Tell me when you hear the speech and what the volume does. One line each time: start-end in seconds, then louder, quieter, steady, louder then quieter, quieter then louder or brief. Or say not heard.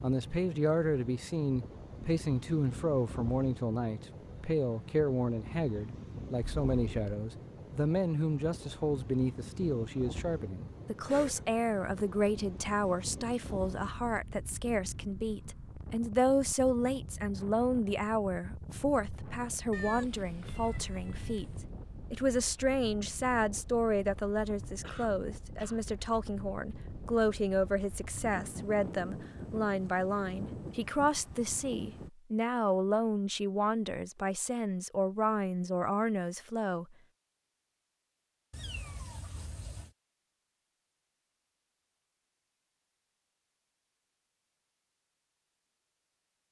0.0-21.4 steady
22.1-37.0 steady.